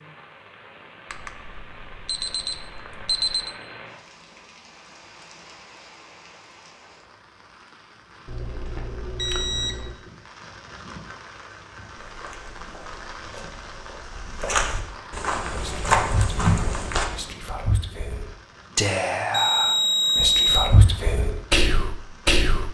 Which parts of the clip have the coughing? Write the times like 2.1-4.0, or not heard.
not heard.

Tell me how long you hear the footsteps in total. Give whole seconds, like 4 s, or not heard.
5 s.